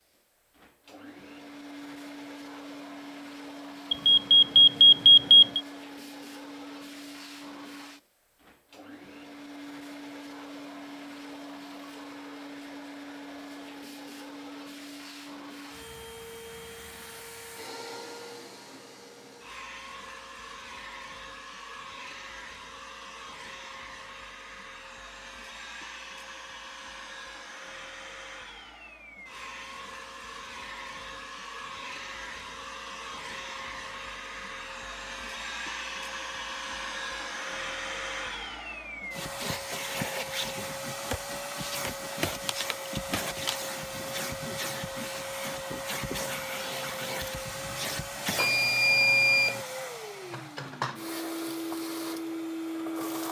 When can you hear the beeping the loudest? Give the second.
5 s.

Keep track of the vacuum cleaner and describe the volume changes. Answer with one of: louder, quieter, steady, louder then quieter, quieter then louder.
louder.